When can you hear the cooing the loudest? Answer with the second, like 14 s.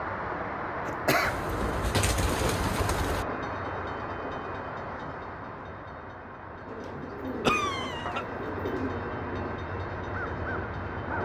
2 s.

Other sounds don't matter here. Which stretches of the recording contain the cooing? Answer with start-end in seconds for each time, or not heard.
1.2-3.2, 6.7-8.9.